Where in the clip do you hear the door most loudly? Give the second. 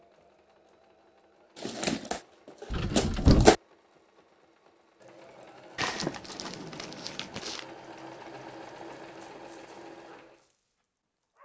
3 s.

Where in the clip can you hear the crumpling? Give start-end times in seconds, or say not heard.
1.6-3.5, 5.8-7.7.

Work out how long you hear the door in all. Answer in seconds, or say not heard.
2 s.